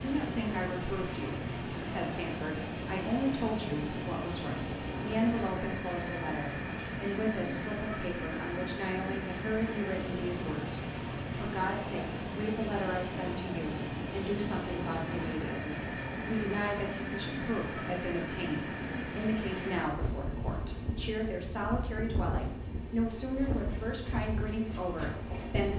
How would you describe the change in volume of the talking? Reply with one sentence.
The volume of the talking stays about the same.